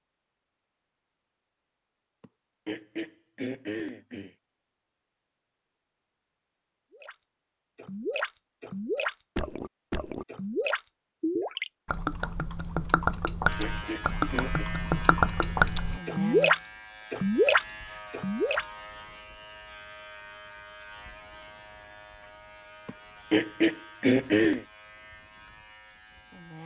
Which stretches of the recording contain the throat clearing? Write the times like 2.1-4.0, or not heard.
2.2-4.3, 13.2-14.7, 22.9-24.6.